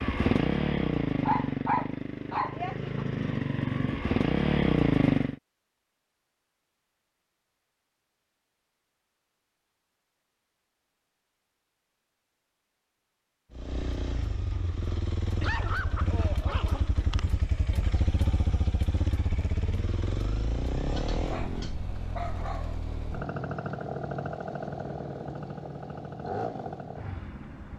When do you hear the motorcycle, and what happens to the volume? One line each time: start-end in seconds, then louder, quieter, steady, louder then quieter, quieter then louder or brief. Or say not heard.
0.0-5.3 quieter then louder
13.5-27.7 steady.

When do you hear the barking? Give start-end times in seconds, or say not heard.
1.2-3.0, 15.4-16.9, 20.9-22.8.